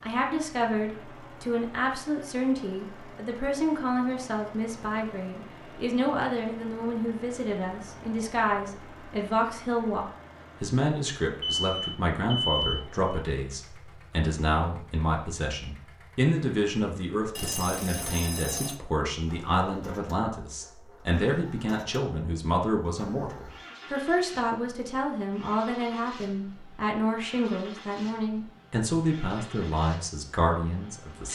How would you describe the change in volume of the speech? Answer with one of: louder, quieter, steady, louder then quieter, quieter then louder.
steady.